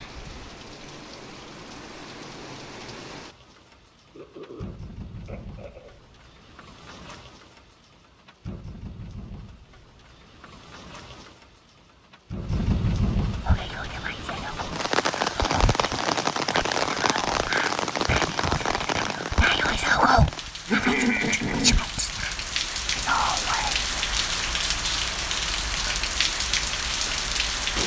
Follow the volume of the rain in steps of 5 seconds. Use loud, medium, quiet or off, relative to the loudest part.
quiet, quiet, medium, loud, loud, loud.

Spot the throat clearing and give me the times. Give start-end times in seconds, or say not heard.
4.1-6.0, 20.6-21.9.